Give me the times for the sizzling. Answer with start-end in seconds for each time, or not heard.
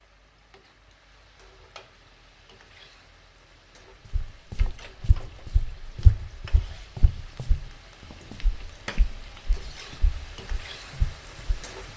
0.0-11.9.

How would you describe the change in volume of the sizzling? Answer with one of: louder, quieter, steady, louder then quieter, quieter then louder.
louder.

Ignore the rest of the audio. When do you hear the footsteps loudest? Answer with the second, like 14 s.
6 s.